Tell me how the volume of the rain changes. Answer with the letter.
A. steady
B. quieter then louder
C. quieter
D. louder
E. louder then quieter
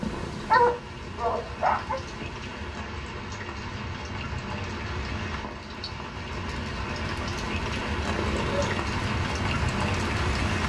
D.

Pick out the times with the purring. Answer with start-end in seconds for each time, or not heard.
0.0-2.8, 7.2-8.8.